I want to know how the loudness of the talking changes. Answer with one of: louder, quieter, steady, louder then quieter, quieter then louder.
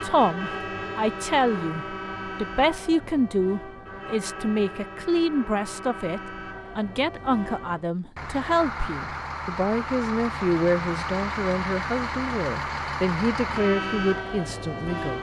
steady.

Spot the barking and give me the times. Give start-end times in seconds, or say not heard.
not heard.